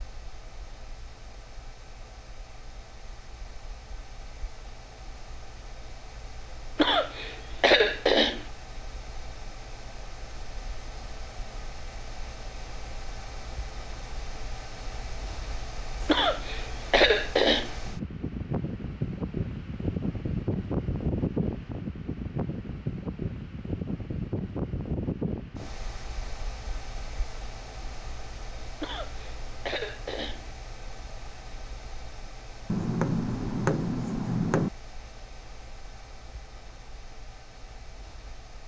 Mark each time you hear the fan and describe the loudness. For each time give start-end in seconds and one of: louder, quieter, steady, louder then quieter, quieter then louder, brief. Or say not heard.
0.0-38.6 louder then quieter.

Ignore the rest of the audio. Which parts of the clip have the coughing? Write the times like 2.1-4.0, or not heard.
6.8-8.4, 16.1-17.8, 28.8-30.4.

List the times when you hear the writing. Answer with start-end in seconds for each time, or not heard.
32.6-34.7.